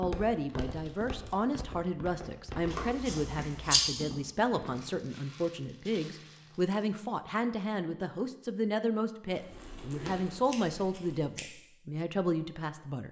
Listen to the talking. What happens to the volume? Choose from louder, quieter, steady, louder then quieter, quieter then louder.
steady.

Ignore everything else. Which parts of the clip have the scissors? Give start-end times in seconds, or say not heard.
2.7-3.9, 9.3-11.4.